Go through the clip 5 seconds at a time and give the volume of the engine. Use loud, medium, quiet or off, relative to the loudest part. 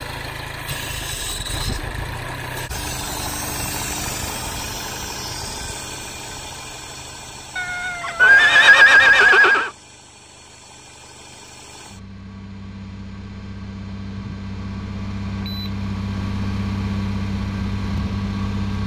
loud, medium, medium, loud.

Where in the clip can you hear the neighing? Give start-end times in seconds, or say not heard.
8.2-9.7.